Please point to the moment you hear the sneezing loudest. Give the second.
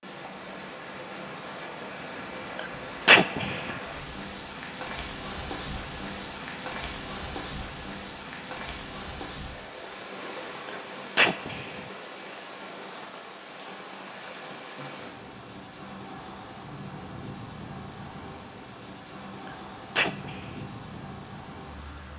3 s.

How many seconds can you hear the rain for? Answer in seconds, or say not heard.
22 s.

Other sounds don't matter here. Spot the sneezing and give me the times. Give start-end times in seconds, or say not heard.
2.5-3.8, 10.7-11.8, 19.4-20.6.